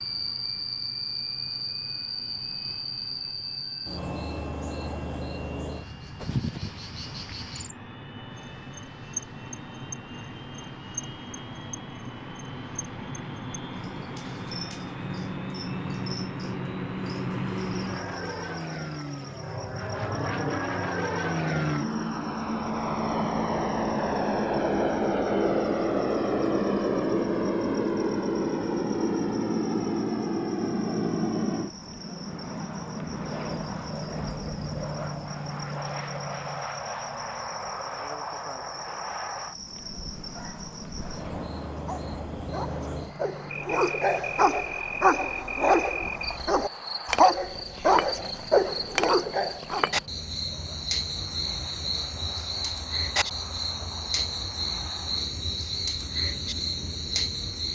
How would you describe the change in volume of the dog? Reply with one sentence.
The volume of the dog goes up.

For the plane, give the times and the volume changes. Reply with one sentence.
The plane can be heard from 0.0 to 57.7 s, getting louder then quieter.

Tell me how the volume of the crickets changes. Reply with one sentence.
The loudness of the crickets goes down, then up.